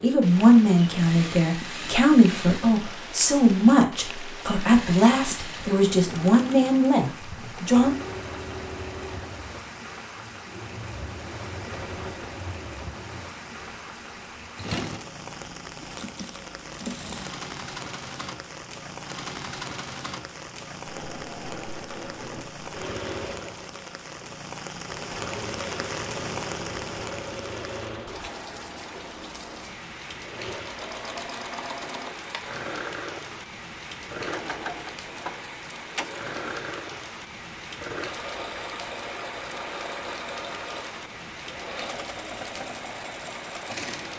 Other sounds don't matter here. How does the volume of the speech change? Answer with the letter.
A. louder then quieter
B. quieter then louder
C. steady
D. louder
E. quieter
C.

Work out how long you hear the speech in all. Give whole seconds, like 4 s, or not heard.
8 s.